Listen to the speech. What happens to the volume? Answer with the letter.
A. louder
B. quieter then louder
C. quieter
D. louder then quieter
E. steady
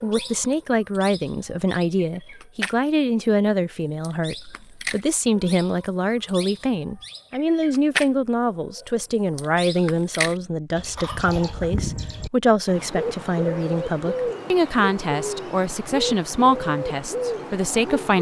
E.